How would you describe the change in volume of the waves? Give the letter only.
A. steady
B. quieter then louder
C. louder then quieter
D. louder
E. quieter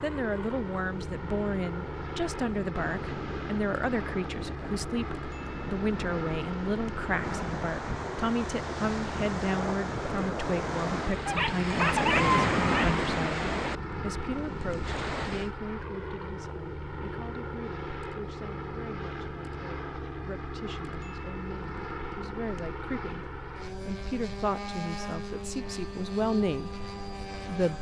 D.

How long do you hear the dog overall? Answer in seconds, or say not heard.
2 s.